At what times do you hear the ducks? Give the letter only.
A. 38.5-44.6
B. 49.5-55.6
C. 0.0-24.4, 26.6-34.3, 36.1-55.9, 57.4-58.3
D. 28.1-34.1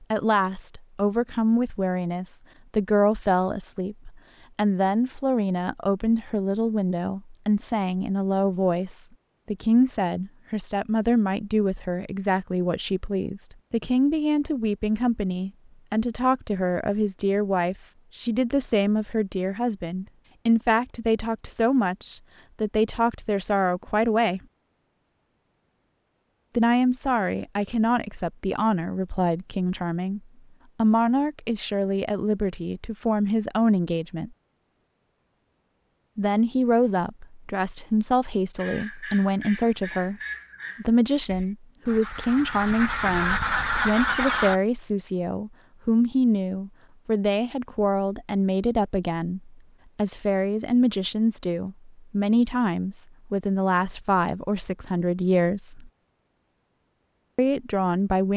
A.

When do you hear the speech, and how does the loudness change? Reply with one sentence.
You can hear the speech from 0.0 to 24.4 s, at a steady volume; from 26.6 to 34.3 s, at a steady volume; from 36.1 to 55.9 s, at a steady volume; and briefly from 57.4 to 58.3 s.